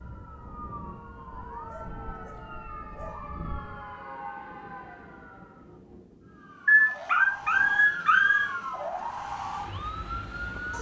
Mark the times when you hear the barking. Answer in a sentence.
The barking can be heard from 1.6 to 3.9 s and from 6.7 to 8.4 s.